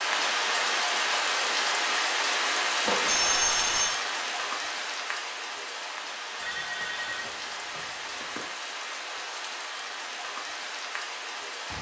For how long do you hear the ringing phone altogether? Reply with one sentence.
The ringing phone can be heard for 3 seconds in total.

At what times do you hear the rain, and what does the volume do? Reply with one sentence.
The rain can be heard from 0.0 to 11.7 s, getting quieter.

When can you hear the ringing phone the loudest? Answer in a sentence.
The loudest moment of the ringing phone is at 3 seconds.